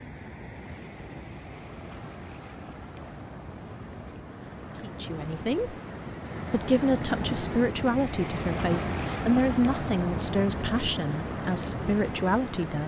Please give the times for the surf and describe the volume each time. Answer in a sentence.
You can hear the surf from 0.0 to 12.8 s, getting louder.